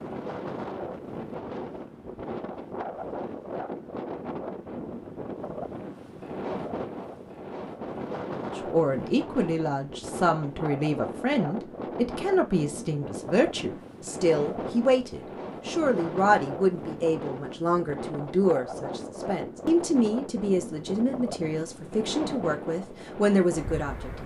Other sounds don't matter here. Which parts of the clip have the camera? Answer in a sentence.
The camera can't be heard in this clip.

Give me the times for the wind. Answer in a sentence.
The wind can be heard from 0.0 to 24.2 s.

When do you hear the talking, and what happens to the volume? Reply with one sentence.
The talking can be heard from 8.6 to 24.2 s, at a steady volume.